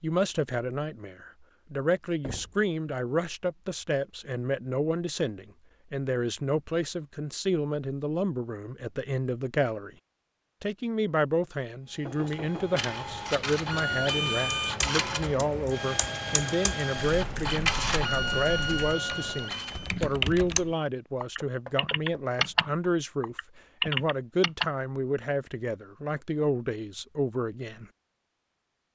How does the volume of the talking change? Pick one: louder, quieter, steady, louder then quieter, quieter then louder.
steady.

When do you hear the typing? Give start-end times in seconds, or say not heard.
14.6-24.7.